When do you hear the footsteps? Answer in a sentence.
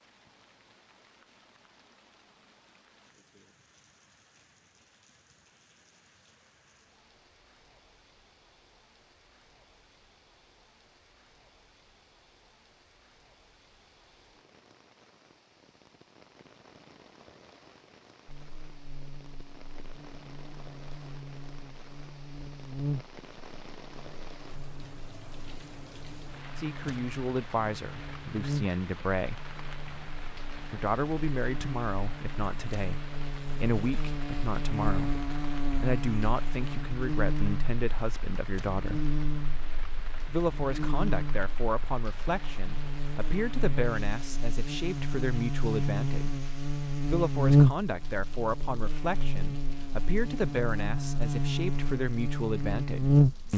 The footsteps can't be heard in this clip.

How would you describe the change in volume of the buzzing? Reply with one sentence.
The volume of the buzzing goes up.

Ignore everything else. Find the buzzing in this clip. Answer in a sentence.
The buzzing can be heard from 18.2 to 53.5 s.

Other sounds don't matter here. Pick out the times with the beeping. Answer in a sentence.
You can't hear the beeping here.